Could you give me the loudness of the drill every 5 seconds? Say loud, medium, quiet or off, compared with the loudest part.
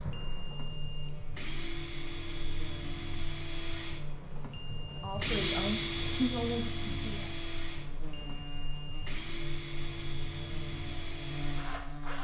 medium, loud, medium.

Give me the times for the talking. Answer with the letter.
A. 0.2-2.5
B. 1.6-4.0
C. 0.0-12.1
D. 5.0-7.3
D.